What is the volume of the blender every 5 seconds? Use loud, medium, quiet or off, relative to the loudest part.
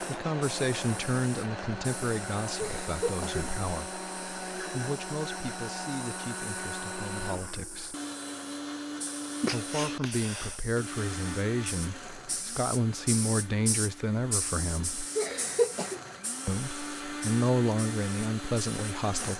loud, loud, medium, loud.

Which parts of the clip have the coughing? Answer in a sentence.
The coughing can be heard from 2.5 to 3.5 s, from 9.4 to 10.6 s and from 15.2 to 16.0 s.